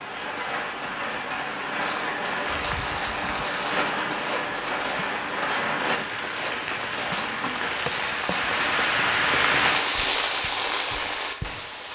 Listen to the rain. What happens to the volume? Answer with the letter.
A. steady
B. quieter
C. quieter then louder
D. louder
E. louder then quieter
D.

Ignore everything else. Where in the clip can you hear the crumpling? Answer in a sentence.
You can hear the crumpling from 1.9 to 4.3 s and from 7.1 to 8.9 s.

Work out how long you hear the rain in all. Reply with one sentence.
You can hear the rain for 12 seconds altogether.